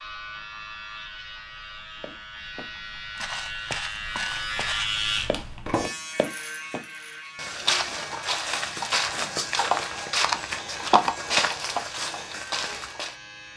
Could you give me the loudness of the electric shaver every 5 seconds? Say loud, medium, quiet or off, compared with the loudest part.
loud, loud, medium.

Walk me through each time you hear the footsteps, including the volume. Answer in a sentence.
The footsteps can be heard from 2.0 to 13.2 s, getting louder.